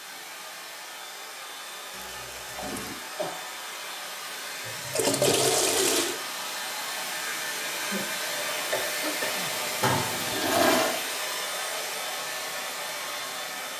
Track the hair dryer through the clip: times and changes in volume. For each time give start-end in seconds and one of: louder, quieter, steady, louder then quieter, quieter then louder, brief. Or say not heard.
0.0-13.7 louder.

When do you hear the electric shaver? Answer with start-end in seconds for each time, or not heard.
not heard.